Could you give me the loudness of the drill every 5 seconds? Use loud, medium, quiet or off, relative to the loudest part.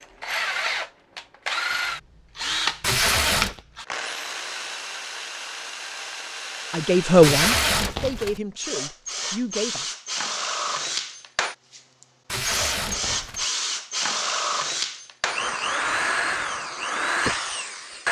loud, medium, loud, loud.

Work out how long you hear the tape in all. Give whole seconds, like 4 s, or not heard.
3 s.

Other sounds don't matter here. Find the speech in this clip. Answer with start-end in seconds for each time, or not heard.
6.7-9.9.